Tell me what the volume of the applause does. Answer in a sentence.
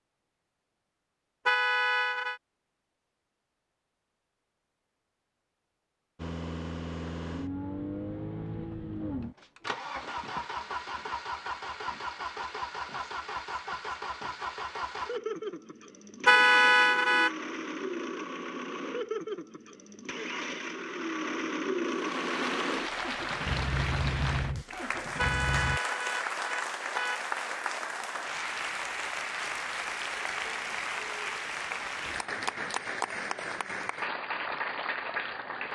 The volume of the applause stays about the same.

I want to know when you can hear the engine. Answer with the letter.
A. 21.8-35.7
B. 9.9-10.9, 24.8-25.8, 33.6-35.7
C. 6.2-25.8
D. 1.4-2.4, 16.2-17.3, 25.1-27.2
C.